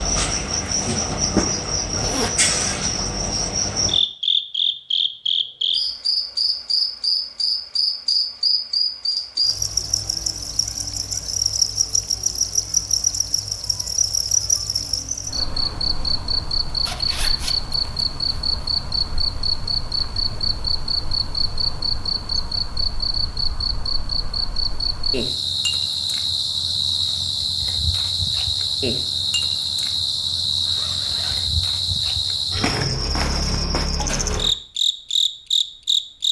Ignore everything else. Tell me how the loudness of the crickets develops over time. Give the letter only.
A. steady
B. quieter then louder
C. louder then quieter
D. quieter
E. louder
A.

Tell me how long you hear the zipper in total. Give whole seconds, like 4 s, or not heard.
3 s.